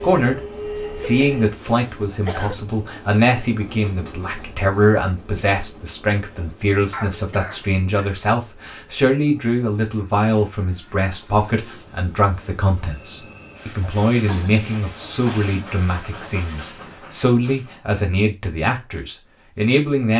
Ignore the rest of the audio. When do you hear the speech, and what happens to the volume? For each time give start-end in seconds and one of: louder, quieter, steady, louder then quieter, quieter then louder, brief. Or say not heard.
0.0-0.4 brief
1.0-20.1 steady.